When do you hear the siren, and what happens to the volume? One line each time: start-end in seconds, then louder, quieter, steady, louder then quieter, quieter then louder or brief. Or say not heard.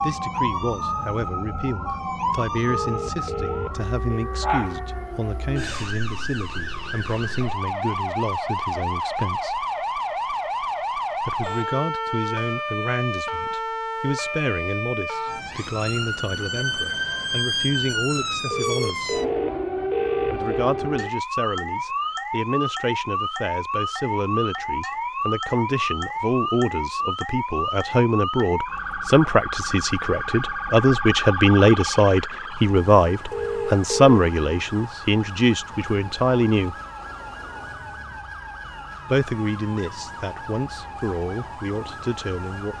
0.0-42.7 quieter.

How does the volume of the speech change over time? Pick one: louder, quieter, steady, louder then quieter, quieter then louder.
louder.